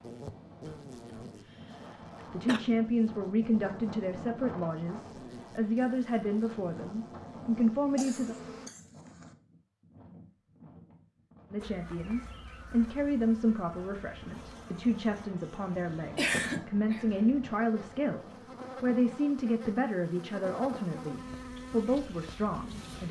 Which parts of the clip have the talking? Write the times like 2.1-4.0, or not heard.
2.3-8.3, 11.5-23.0.